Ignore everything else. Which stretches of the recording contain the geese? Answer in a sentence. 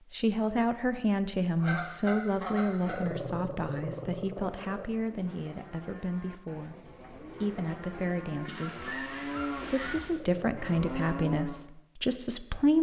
The geese can be heard from 1.6 to 3.0 s and from 8.4 to 10.2 s.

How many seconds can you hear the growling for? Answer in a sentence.
The growling can be heard for 3 seconds in total.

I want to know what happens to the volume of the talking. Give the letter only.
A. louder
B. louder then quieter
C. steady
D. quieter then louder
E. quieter
D.